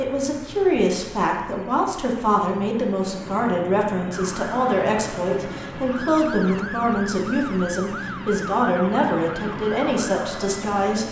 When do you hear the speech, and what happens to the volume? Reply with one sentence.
The speech can be heard from 0.0 to 11.0 s, at a steady volume.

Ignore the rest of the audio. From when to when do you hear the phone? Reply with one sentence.
The phone can't be heard in this clip.